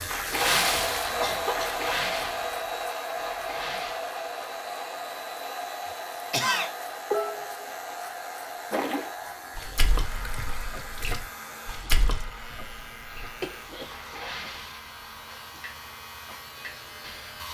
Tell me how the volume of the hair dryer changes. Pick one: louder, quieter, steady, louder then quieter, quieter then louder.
quieter.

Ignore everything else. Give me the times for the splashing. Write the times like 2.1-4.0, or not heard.
0.0-4.0, 8.7-17.4.